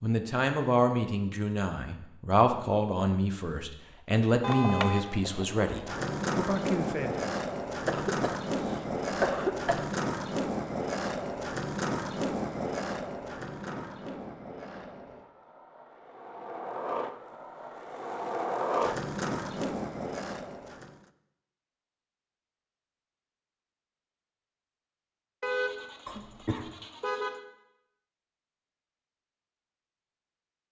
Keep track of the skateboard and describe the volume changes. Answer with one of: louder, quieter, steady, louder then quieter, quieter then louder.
quieter then louder.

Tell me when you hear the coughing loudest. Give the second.
9 s.